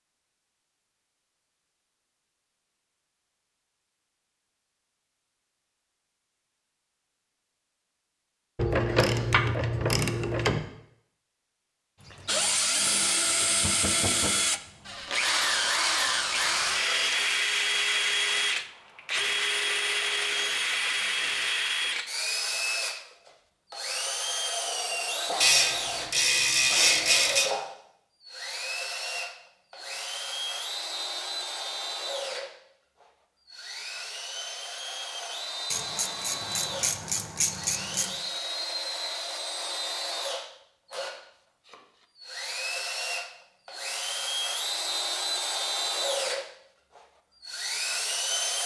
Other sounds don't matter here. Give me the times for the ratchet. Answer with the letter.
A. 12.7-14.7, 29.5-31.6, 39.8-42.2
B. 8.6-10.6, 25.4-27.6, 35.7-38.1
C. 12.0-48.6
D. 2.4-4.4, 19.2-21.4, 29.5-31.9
B.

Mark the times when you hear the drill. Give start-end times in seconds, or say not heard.
12.0-48.6.